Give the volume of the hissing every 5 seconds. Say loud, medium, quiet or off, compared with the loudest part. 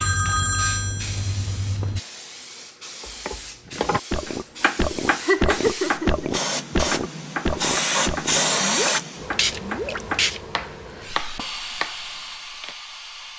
quiet, loud, medium.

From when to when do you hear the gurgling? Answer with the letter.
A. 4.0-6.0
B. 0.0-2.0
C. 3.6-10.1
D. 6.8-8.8
C.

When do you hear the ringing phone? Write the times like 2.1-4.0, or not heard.
0.0-2.0.